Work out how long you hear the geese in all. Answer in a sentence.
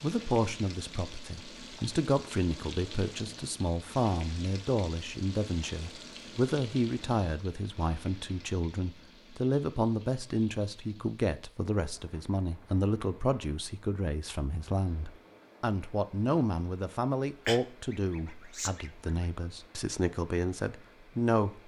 You can hear the geese for 2 seconds altogether.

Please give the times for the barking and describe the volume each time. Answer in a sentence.
The barking can't be heard in this clip.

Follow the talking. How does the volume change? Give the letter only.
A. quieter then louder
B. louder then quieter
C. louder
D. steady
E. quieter
D.